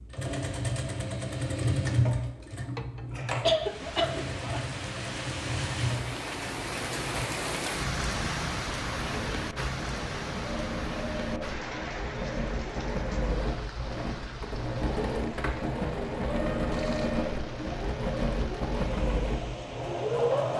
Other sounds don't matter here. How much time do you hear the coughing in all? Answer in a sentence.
The coughing can be heard for 2 seconds in total.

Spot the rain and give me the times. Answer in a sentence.
The rain can be heard from 3.5 to 20.5 s.